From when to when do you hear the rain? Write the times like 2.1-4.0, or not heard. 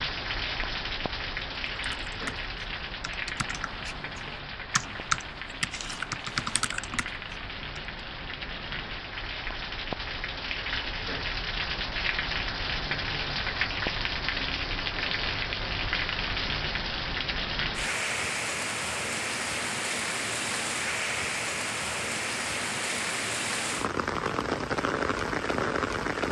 0.0-26.2.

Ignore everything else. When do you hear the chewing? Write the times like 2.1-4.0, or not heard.
not heard.